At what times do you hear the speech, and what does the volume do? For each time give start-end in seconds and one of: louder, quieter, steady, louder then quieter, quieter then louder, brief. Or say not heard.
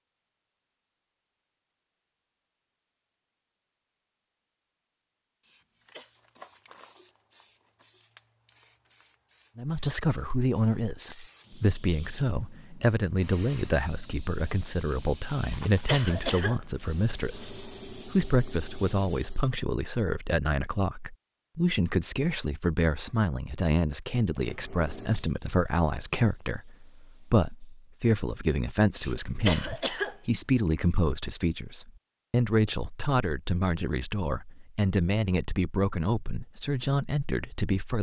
9.6-37.9 steady.